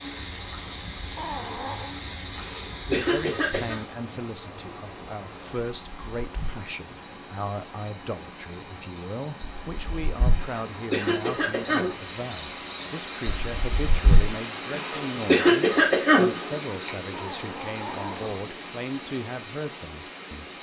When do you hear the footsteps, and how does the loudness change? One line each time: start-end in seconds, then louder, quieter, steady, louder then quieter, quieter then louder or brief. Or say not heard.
not heard.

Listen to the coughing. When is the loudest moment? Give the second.
15 s.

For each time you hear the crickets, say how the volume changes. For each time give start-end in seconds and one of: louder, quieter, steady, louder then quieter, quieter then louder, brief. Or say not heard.
0.0-14.3 louder.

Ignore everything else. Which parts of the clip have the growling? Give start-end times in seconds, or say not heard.
1.1-1.9, 17.1-18.4.